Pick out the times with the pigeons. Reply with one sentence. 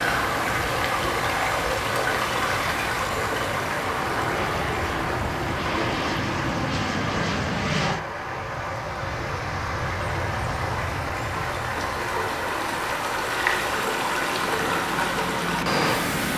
You can't hear the pigeons here.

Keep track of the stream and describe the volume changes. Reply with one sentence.
The loudness of the stream goes down, then up.